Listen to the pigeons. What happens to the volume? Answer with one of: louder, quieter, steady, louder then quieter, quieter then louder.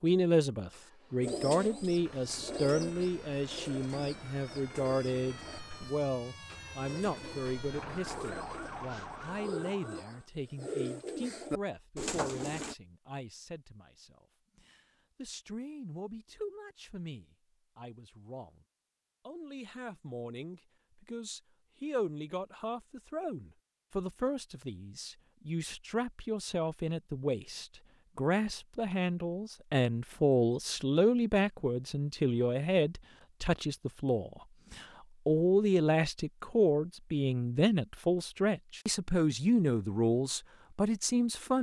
quieter then louder.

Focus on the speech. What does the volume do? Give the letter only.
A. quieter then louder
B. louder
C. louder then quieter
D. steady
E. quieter
A.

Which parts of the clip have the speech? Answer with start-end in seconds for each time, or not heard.
0.0-18.6, 19.2-41.5.